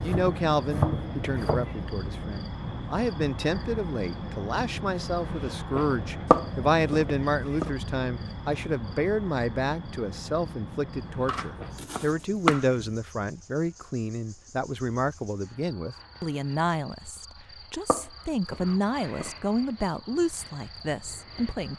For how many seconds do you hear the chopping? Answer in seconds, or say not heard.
6 s.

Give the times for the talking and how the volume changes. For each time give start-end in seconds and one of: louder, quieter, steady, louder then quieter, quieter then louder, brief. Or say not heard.
0.0-21.7 steady.